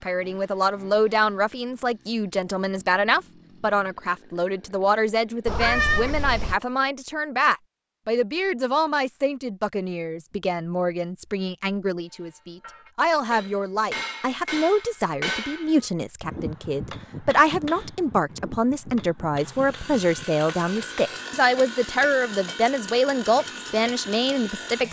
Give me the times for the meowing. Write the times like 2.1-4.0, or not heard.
5.5-6.6.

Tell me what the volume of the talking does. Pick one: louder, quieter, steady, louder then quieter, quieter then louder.
steady.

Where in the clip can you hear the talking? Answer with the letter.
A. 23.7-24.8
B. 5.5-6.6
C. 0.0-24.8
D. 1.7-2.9
C.